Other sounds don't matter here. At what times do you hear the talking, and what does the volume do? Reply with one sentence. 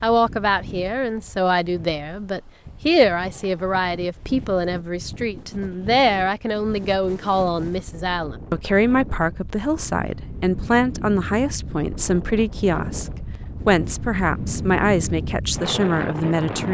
You can hear the talking from 0.0 to 16.7 s, at a steady volume.